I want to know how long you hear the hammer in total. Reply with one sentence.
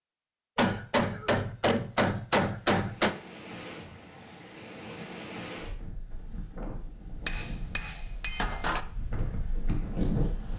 The hammer can be heard for 4 seconds in total.